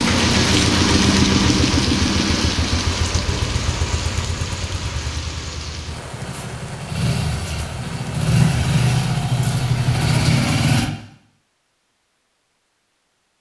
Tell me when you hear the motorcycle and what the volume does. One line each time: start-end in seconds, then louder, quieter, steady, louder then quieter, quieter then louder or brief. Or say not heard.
0.0-10.9 quieter then louder.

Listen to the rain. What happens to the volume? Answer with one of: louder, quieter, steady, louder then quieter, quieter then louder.
quieter.